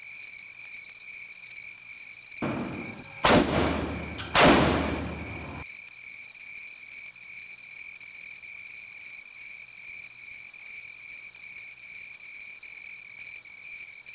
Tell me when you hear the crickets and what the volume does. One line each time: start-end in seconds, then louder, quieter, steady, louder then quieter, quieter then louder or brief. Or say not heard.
0.0-14.0 steady.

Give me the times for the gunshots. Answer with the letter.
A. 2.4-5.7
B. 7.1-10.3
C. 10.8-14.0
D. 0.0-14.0
A.